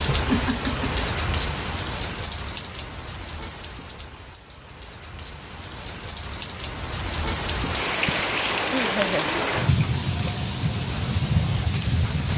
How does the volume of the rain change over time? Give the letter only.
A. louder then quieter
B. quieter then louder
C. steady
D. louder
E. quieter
B.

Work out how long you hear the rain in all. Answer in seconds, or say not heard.
12 s.